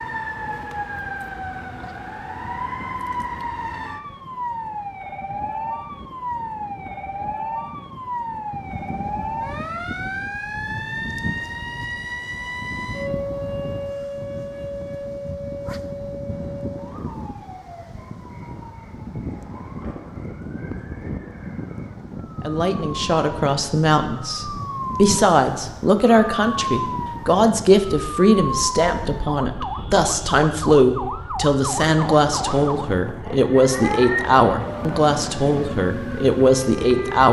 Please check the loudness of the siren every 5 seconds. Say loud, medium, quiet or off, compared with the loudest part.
loud, loud, loud, medium, medium, loud, loud, loud.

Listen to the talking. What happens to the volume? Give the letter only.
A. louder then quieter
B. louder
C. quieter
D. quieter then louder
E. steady
E.